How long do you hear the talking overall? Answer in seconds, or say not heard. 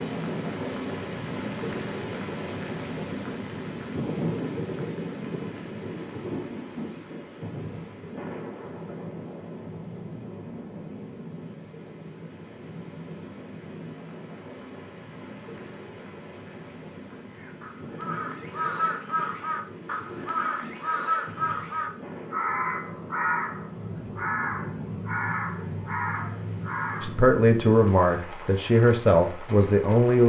3 s.